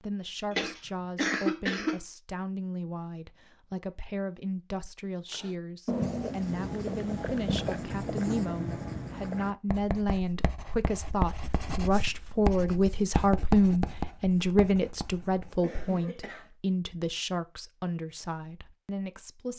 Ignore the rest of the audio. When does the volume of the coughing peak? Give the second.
1 s.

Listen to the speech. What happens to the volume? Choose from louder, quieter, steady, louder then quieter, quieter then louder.
louder then quieter.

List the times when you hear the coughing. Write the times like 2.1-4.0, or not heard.
0.5-2.0, 15.4-16.5.